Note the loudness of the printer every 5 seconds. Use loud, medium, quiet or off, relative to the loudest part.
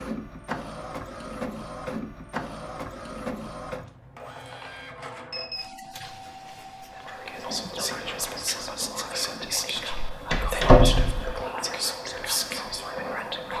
loud, medium, medium.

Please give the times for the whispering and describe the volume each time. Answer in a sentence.
The whispering can be heard from 7.0 to 13.5 s, at a steady volume.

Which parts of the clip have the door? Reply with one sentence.
The door can be heard from 9.9 to 11.3 s.